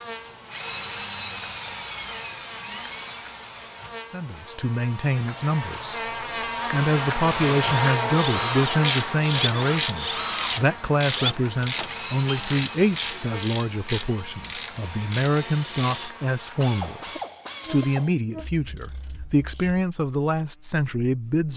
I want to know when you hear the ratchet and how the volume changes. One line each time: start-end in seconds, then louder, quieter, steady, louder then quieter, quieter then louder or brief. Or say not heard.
8.7-19.9 quieter.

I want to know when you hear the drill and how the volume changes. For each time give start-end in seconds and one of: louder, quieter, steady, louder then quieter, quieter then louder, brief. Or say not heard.
0.0-4.5 quieter
7.2-16.1 quieter.